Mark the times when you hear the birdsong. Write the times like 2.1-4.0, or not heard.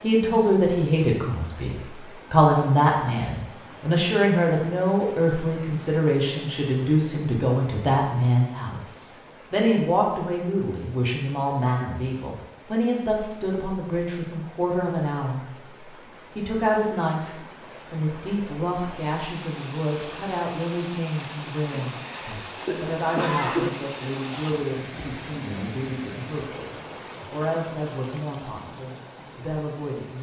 not heard.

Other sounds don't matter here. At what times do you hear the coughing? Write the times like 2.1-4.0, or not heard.
21.9-23.7.